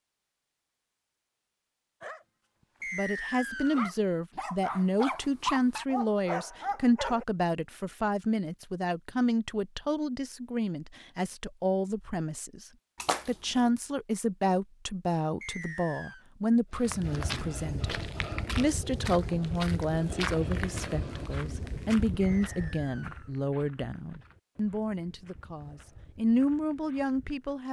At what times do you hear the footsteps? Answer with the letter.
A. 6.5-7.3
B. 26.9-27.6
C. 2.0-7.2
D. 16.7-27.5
D.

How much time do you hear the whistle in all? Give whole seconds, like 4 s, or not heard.
3 s.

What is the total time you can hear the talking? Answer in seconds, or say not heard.
24 s.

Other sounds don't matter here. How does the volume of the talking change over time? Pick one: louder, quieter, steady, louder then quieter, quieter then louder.
steady.